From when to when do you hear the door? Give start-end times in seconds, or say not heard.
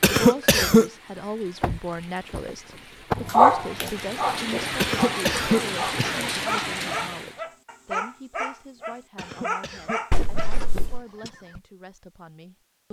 1.6-2.4, 10.1-11.0.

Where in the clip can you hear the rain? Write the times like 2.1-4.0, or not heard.
0.2-7.4.